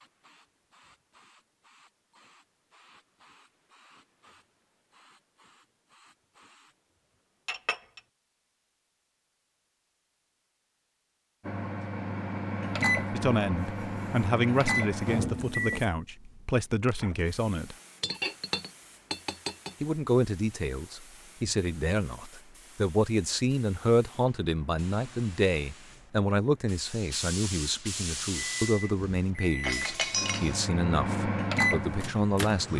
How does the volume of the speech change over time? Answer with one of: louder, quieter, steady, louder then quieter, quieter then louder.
steady.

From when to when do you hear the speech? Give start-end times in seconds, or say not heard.
13.2-17.8, 19.8-32.7.